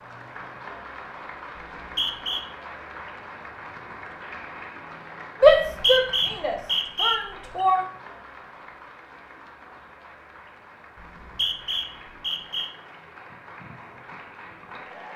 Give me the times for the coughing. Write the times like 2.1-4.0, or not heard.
not heard.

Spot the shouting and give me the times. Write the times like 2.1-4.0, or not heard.
5.4-7.8.